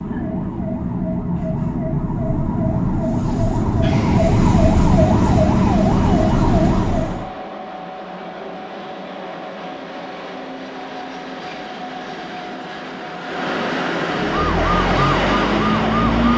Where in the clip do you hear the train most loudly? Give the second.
15 s.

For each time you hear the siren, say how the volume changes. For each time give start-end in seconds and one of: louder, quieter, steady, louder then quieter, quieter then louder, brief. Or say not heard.
0.0-7.2 louder
14.1-16.3 brief.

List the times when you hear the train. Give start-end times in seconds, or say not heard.
3.8-16.3.